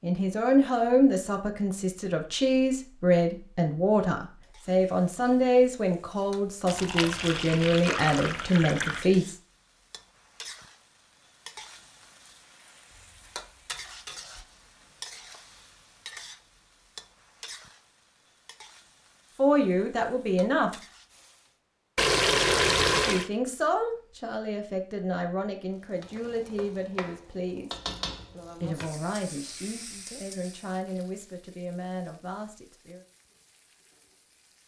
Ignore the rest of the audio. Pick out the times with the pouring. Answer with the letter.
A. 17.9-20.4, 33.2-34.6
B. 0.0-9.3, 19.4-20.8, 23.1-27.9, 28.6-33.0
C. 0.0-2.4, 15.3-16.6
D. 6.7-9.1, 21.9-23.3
D.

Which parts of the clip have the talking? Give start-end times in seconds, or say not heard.
0.0-9.3, 19.4-20.8, 23.1-27.9, 28.6-33.0.